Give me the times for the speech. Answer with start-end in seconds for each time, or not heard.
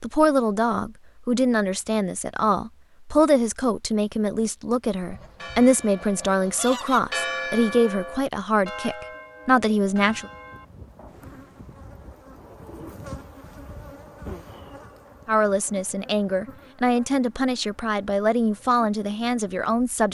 0.0-10.3, 15.2-20.0.